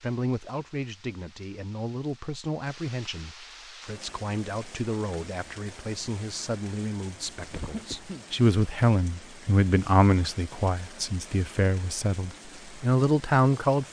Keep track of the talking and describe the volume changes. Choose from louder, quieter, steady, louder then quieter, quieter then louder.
louder.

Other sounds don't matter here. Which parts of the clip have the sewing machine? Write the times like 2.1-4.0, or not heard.
not heard.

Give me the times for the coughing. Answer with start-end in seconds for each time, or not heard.
7.5-8.2.